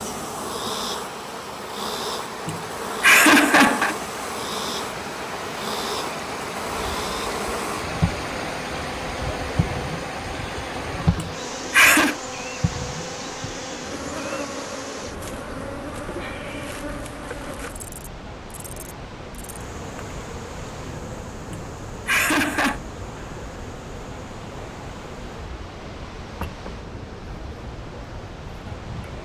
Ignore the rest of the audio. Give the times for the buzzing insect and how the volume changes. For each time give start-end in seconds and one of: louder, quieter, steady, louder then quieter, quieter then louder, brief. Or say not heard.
0.0-29.1 quieter.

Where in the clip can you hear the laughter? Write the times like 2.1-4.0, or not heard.
2.5-4.0, 11.2-12.2, 21.5-22.8.